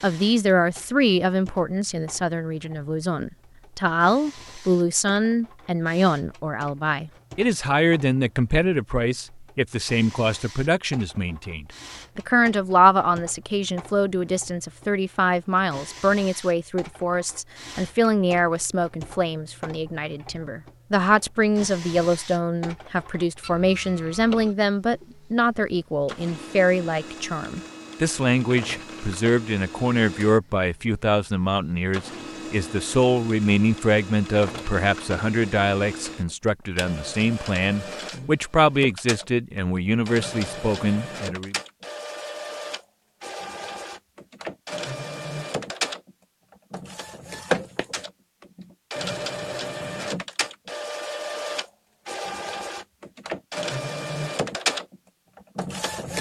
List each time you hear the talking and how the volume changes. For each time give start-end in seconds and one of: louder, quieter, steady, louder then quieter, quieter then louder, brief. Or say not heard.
0.0-41.5 steady.